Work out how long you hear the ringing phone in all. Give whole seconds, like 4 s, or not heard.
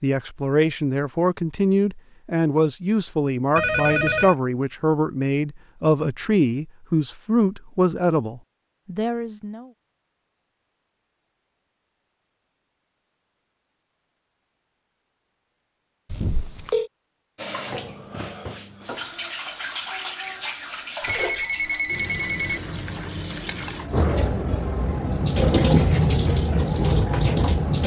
3 s.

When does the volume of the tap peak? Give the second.
26 s.